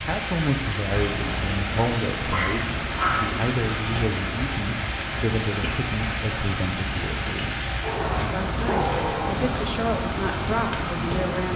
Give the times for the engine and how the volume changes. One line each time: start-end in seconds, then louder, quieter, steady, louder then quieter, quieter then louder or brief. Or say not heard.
0.0-11.5 steady.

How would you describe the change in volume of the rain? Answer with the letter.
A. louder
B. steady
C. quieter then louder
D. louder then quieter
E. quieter
B.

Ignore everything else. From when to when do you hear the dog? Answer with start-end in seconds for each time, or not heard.
2.3-3.4, 7.8-9.3.